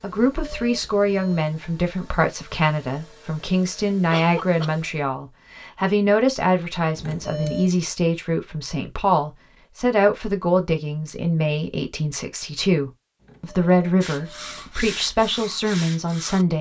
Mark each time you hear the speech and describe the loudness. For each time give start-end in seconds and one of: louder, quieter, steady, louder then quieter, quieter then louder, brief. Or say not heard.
0.0-16.5 steady.